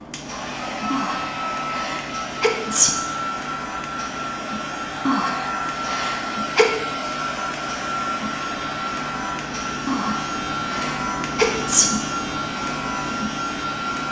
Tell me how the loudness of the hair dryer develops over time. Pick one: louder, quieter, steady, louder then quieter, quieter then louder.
steady.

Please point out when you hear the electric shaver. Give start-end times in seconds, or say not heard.
0.0-14.0.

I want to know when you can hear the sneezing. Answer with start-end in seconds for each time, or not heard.
0.9-2.9, 5.0-6.7, 9.8-11.9.